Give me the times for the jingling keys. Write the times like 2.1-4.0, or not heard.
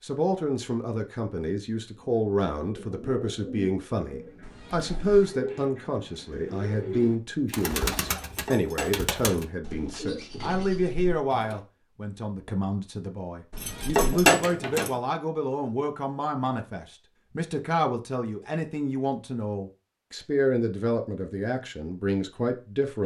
8.3-9.4, 13.6-14.9.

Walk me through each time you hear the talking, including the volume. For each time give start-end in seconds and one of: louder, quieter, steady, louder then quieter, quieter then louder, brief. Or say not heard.
0.0-23.0 steady.